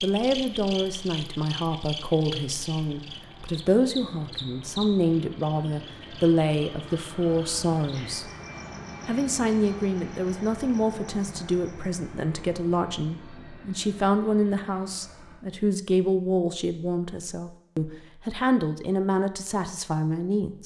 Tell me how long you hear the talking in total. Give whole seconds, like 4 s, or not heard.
20 s.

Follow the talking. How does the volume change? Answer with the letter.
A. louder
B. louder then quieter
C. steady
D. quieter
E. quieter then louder
C.